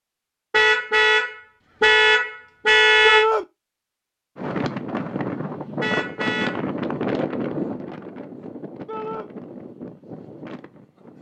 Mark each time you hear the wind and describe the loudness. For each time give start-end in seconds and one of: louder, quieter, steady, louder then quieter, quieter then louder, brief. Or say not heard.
4.3-11.1 quieter.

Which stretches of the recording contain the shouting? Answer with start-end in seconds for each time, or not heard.
3.0-3.5, 8.8-9.3.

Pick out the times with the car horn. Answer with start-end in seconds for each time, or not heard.
0.5-3.2, 5.8-6.7.